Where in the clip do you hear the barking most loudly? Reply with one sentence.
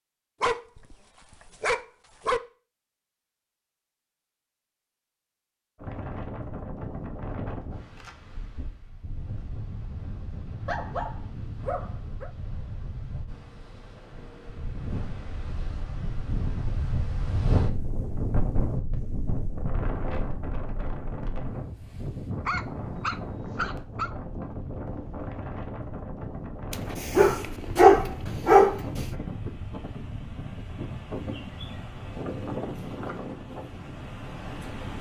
The loudest moment of the barking is at 28 seconds.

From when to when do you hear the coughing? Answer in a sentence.
The coughing can't be heard in this clip.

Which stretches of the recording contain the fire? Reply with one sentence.
The fire can't be heard in this clip.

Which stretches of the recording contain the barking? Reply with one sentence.
You can hear the barking from 0.4 to 2.4 s, from 10.7 to 12.3 s, from 22.4 to 24.1 s and from 27.1 to 28.8 s.